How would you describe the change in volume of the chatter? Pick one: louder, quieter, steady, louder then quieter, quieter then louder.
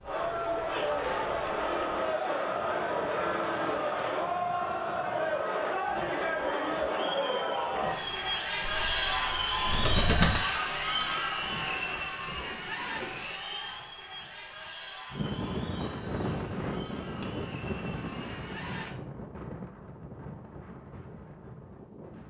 quieter.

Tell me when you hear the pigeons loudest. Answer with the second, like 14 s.
10 s.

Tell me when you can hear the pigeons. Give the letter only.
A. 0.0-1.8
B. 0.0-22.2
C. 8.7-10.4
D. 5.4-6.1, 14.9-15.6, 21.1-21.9
C.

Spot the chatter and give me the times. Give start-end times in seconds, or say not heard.
0.0-18.9.